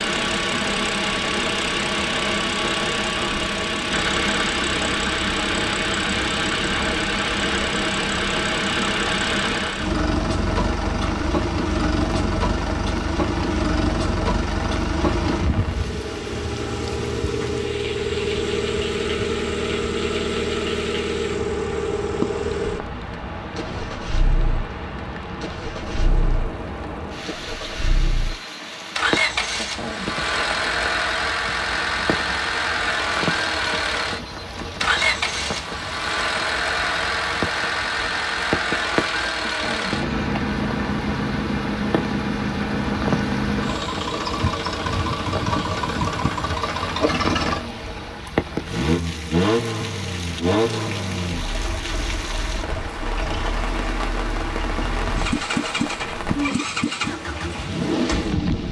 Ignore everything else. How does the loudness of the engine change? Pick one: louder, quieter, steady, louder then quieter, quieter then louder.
steady.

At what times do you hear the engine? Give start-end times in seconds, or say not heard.
0.0-58.6.